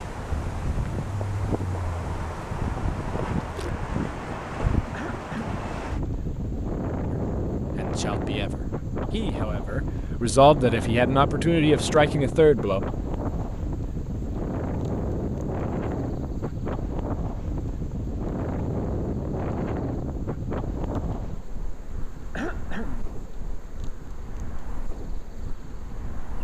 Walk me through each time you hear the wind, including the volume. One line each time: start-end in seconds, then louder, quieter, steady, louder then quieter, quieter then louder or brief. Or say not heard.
0.0-26.4 quieter.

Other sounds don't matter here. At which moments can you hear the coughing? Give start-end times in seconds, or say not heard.
4.9-5.5, 22.4-23.1.